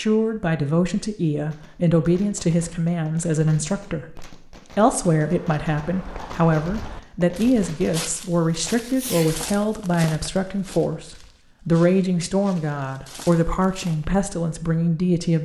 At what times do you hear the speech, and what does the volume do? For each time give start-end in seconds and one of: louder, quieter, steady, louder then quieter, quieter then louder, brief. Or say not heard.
0.0-15.4 steady.